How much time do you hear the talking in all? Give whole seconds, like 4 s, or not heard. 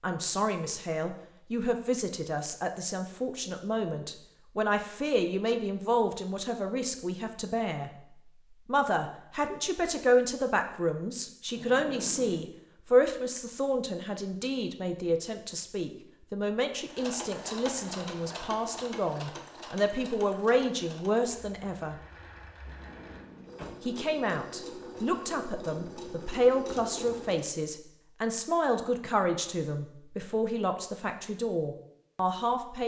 30 s.